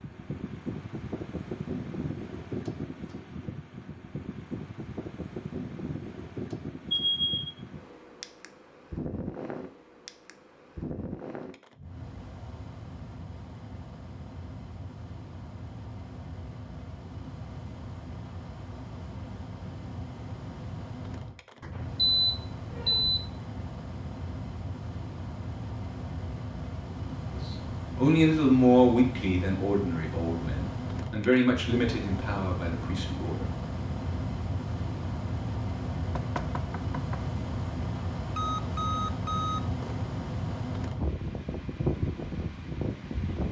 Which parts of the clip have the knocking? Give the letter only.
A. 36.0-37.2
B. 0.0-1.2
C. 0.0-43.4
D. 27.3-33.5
A.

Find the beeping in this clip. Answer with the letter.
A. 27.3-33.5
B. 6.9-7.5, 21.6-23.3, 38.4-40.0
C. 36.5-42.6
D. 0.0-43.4
B.